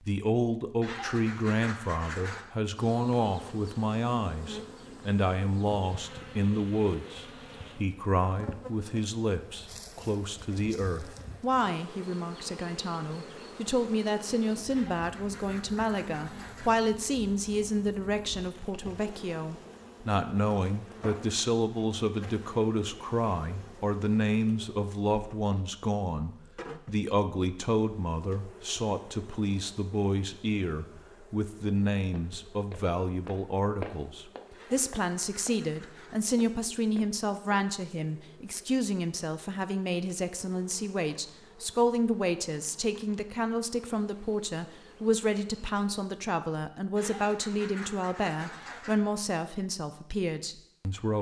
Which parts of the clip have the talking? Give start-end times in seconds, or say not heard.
0.0-51.1.